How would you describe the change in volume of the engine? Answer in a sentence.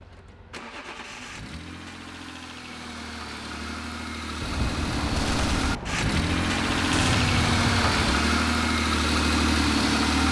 The loudness of the engine goes up.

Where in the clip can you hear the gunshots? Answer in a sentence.
The gunshots can be heard from 4.4 to 8.2 s.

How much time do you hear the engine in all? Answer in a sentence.
The engine can be heard for 10 seconds in total.